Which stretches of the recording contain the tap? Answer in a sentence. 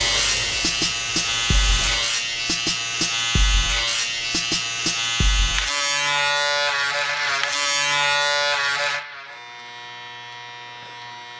You can hear the tap from 0.0 to 2.1 s.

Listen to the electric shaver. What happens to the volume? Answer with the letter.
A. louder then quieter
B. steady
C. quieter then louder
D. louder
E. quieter
E.